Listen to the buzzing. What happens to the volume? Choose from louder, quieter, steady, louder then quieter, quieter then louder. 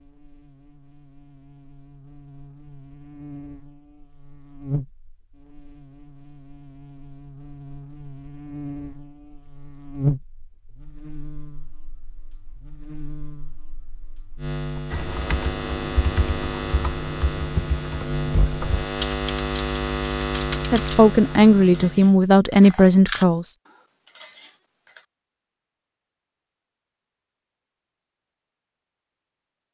louder.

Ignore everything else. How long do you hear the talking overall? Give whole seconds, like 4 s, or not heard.
3 s.